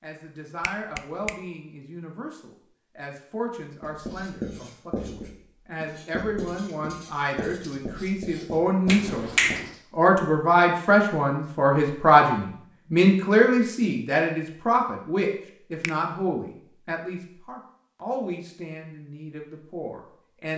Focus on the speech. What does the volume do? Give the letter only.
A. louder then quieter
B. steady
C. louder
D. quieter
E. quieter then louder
A.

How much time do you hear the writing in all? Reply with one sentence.
The writing can be heard for 6 seconds in total.